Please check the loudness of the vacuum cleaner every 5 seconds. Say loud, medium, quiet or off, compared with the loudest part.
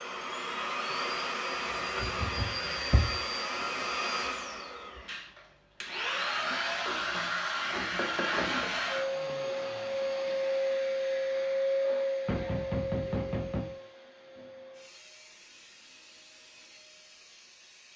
loud, loud, loud, quiet.